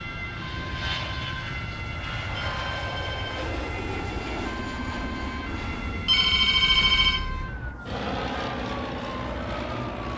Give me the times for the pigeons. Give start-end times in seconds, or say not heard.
not heard.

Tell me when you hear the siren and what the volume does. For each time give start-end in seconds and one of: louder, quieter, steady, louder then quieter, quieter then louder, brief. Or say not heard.
0.0-10.1 steady.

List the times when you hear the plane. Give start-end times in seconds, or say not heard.
0.0-10.1.